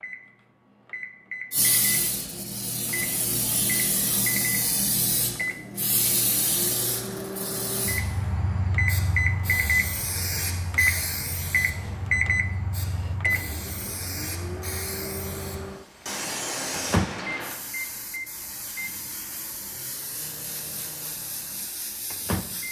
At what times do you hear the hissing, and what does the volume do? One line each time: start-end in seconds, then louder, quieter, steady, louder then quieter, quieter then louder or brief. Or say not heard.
1.5-22.6 quieter.